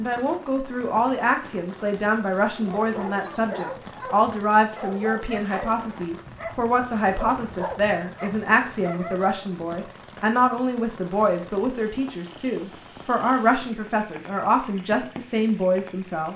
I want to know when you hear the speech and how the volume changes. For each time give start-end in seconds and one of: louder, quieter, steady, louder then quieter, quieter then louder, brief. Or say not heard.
0.0-16.3 steady.